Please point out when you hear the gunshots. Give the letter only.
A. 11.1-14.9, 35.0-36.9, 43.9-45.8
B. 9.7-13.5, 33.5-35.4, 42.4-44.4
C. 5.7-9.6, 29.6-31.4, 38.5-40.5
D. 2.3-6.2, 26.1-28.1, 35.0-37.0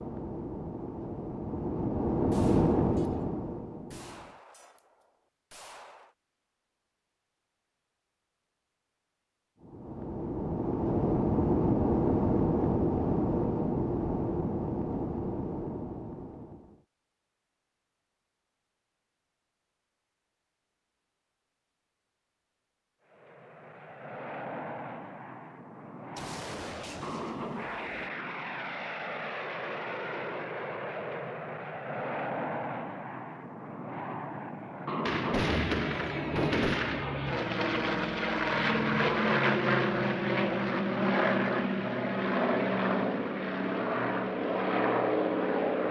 D.